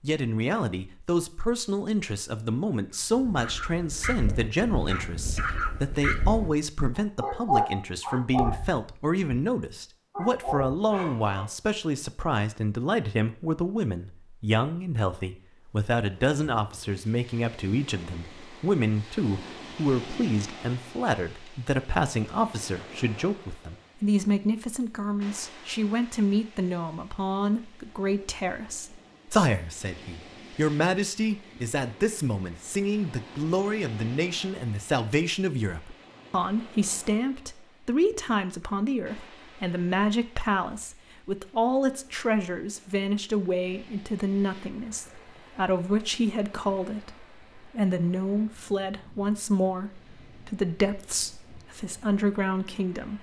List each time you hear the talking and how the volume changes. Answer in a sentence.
You can hear the talking from 0.0 to 53.1 s, at a steady volume.